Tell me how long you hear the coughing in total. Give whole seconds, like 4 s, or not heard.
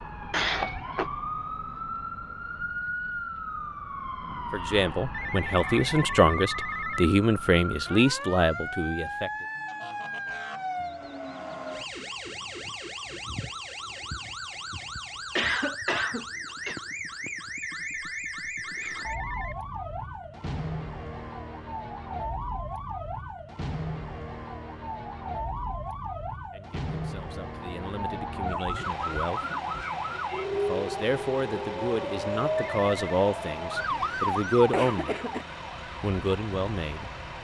4 s.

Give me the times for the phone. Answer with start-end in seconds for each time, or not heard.
5.1-7.1, 17.6-19.6, 32.5-33.0.